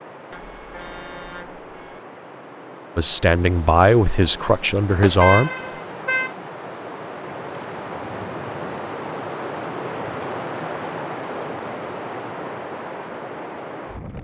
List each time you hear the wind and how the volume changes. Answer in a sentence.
You can hear the wind from 0.0 to 14.1 s, getting louder.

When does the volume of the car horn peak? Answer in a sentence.
The loudest moment of the car horn is at 5 seconds.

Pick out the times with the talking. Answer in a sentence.
The talking can be heard from 3.0 to 5.5 s.